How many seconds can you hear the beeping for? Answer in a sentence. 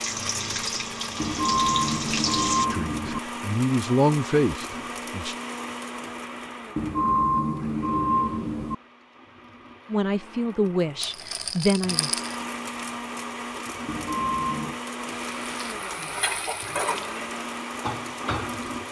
The beeping can be heard for 5 seconds in total.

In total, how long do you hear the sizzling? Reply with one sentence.
The sizzling can be heard for 6 seconds in total.